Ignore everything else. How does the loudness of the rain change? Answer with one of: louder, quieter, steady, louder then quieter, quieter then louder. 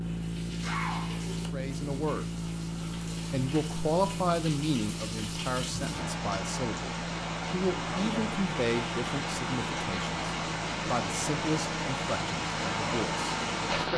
louder.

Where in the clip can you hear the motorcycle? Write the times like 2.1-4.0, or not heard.
0.0-13.7.